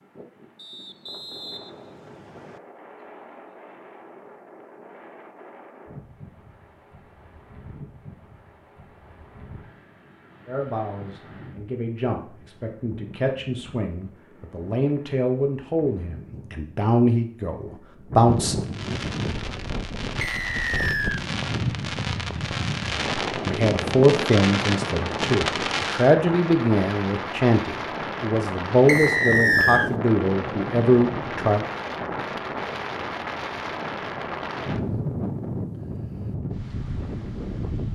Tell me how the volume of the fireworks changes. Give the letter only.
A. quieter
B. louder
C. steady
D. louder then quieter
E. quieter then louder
B.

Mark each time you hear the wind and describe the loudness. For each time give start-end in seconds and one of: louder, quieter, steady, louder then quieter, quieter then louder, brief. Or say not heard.
0.0-37.9 louder.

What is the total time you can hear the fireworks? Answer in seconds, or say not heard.
8 s.